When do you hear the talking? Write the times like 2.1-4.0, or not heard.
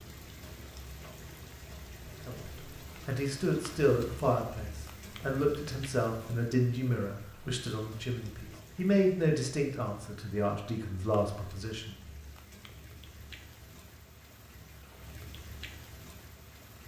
2.2-12.0.